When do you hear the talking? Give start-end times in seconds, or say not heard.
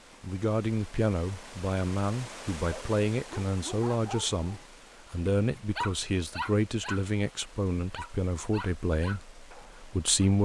0.2-10.3.